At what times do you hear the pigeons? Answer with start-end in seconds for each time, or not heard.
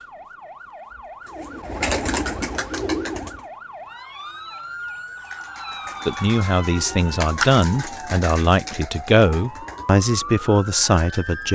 1.2-3.5, 5.0-11.5.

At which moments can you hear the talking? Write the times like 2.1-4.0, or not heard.
6.0-11.5.